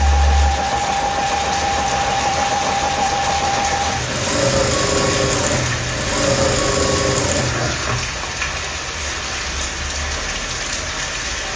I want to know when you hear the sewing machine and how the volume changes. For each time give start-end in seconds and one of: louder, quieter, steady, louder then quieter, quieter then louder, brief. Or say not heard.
0.0-7.8 steady.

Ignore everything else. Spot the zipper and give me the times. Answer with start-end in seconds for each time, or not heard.
not heard.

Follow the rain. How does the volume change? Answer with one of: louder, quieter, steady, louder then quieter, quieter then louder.
steady.